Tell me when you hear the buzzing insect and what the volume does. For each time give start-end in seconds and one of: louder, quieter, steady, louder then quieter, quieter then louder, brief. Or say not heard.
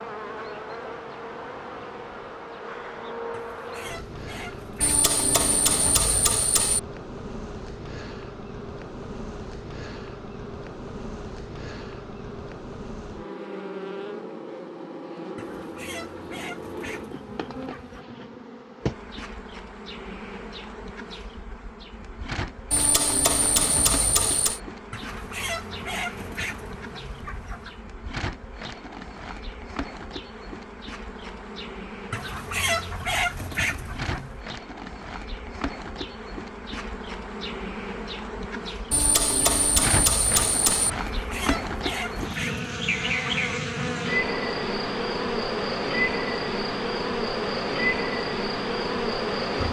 0.0-49.6 louder.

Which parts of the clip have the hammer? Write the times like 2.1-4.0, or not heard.
4.8-6.8, 22.7-24.6, 38.9-40.9.